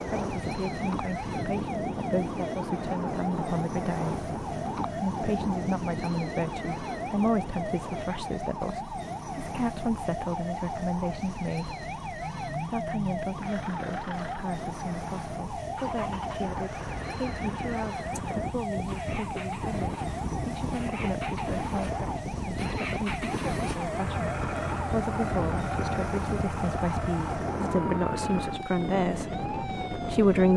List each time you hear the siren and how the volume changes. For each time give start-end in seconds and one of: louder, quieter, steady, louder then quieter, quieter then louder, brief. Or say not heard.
0.0-30.5 steady.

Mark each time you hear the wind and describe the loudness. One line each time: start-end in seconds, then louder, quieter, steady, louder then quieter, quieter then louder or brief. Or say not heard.
0.0-30.5 quieter then louder.